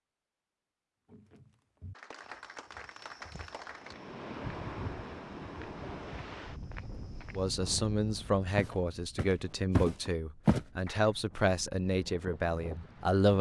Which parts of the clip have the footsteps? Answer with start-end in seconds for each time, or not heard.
1.1-7.6, 8.6-10.6.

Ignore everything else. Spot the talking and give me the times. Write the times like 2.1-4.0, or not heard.
7.3-13.3.